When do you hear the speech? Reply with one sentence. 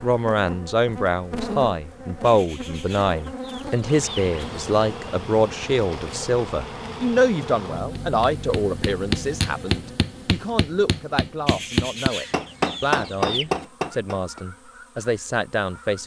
You can hear the speech from 0.0 to 16.0 s.